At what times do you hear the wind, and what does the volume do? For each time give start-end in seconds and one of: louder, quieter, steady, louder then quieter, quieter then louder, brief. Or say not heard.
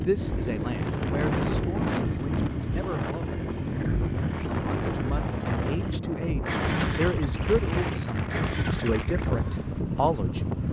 0.0-10.6 steady.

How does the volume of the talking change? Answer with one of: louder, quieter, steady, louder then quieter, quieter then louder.
quieter then louder.